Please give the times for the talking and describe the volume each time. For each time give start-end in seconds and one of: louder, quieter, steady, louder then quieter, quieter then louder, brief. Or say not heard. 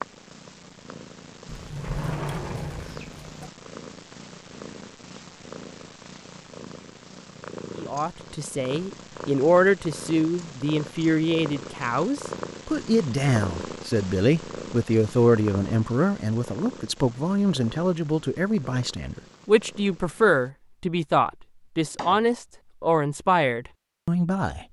7.8-24.6 steady.